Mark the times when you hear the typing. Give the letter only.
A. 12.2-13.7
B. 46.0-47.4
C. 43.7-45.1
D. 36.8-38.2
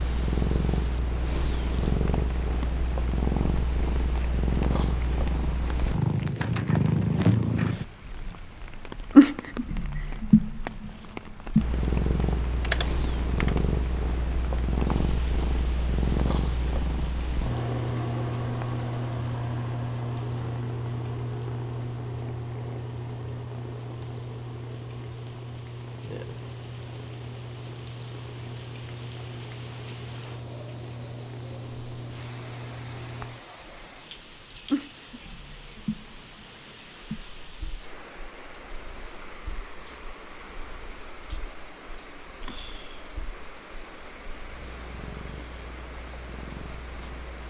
A.